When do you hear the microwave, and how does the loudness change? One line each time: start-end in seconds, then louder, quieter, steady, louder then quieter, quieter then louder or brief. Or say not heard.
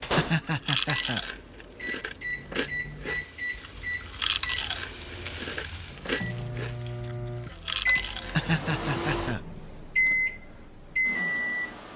0.0-11.9 louder.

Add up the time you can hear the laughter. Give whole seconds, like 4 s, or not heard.
2 s.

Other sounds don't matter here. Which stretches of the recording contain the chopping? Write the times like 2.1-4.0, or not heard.
not heard.